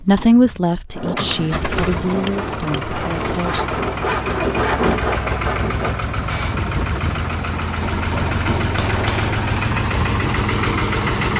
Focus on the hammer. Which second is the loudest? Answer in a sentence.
The volume of the hammer peaks at 9 seconds.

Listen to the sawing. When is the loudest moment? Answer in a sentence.
The loudest moment of the sawing is at 5 seconds.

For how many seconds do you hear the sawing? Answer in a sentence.
The sawing can be heard for 6 seconds in total.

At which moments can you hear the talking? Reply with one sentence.
You can hear the talking from 0.0 to 3.9 s.